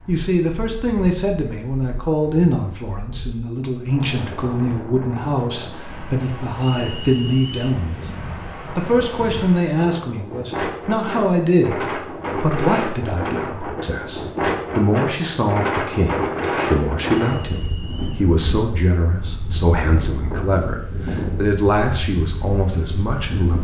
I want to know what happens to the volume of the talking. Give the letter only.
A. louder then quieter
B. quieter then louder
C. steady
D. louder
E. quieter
C.